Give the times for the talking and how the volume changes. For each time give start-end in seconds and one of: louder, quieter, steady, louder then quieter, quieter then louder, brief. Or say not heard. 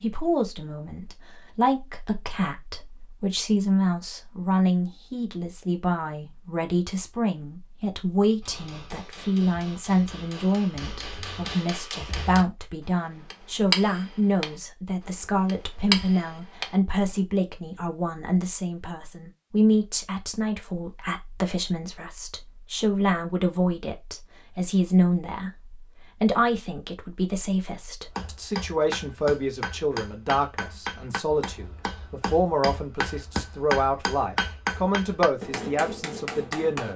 0.0-36.9 steady.